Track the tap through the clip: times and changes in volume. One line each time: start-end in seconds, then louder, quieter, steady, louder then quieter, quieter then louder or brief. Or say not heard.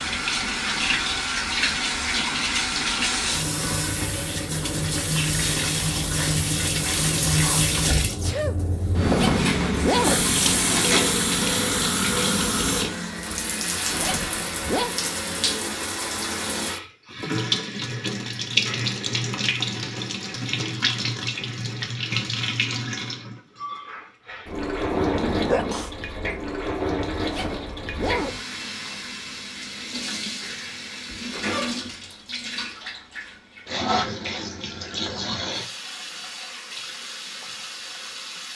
0.0-38.5 quieter.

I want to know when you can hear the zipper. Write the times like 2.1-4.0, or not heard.
9.1-10.2, 13.9-14.9, 27.2-28.4.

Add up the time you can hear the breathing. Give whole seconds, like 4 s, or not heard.
not heard.